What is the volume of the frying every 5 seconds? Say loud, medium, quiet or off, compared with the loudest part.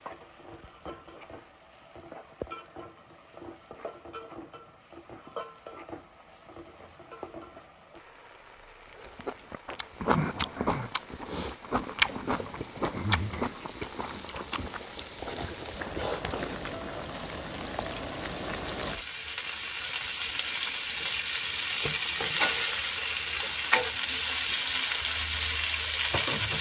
quiet, quiet, quiet, medium, loud, loud.